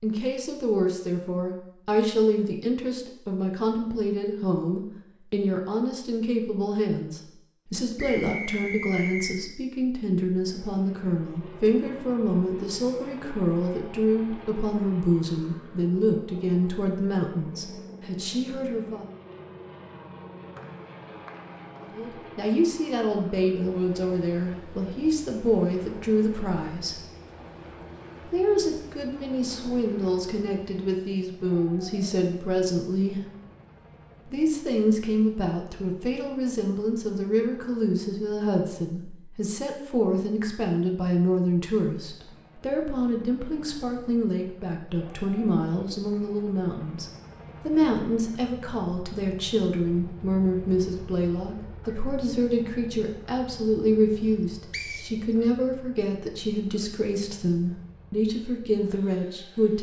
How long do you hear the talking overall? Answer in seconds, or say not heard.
54 s.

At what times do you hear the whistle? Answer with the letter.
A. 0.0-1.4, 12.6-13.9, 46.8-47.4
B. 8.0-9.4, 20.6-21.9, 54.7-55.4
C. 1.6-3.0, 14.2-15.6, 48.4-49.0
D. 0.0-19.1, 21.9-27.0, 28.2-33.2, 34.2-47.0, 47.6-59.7
B.